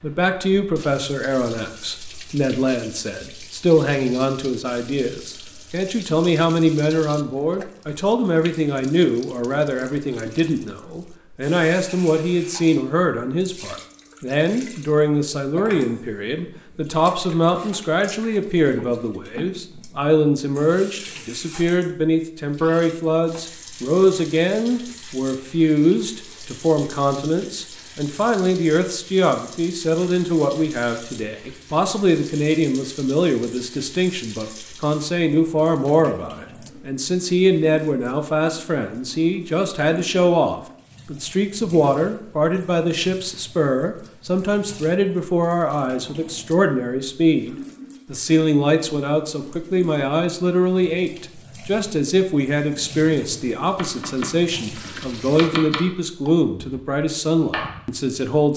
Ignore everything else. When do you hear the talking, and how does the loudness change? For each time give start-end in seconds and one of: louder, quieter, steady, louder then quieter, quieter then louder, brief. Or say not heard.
0.0-58.5 steady.